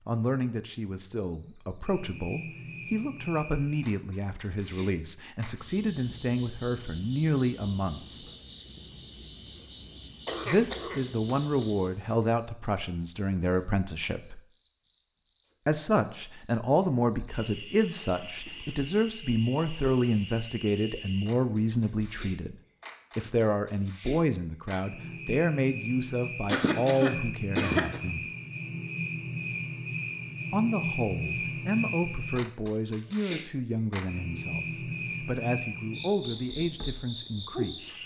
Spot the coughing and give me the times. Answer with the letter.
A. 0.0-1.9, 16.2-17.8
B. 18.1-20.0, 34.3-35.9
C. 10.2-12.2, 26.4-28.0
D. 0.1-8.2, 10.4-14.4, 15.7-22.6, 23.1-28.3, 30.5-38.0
C.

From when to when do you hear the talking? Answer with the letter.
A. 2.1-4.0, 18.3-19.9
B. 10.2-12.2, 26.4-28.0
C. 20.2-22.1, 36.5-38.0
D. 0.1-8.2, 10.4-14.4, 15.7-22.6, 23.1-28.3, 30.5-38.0
D.